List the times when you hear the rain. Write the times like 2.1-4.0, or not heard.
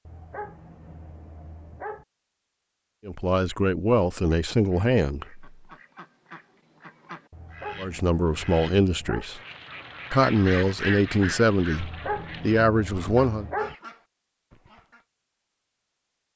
not heard.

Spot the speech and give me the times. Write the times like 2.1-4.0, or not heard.
3.0-5.5, 7.8-9.4, 10.1-13.4.